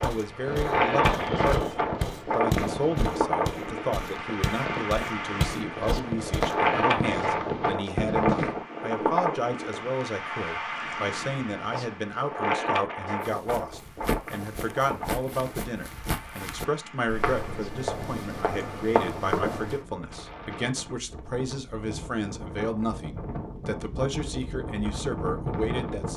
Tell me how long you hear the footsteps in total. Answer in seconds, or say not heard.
13 s.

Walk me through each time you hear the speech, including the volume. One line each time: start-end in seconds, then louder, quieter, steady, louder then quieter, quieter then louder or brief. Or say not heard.
0.0-26.1 steady.